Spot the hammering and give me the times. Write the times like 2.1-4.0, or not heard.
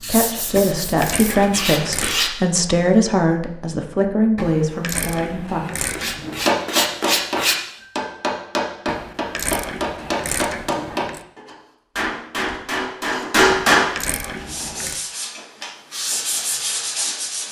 6.5-13.9.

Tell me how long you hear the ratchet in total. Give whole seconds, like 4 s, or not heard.
8 s.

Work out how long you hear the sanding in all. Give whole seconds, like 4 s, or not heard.
7 s.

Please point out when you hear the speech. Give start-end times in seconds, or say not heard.
0.0-5.6.